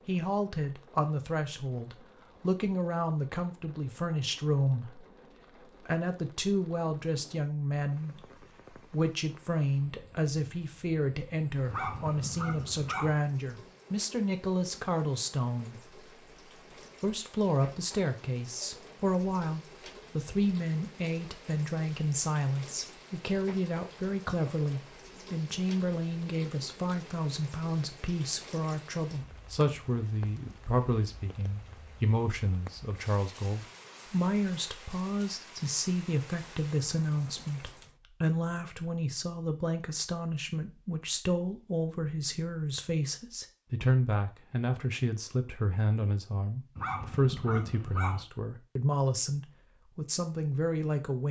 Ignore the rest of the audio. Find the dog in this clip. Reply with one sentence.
The dog can be heard from 11.7 to 13.2 s and from 46.8 to 48.2 s.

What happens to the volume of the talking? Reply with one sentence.
The loudness of the talking stays about the same.